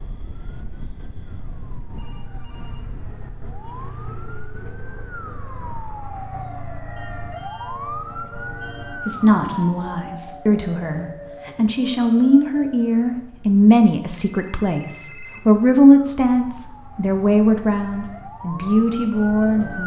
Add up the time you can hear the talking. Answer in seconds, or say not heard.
11 s.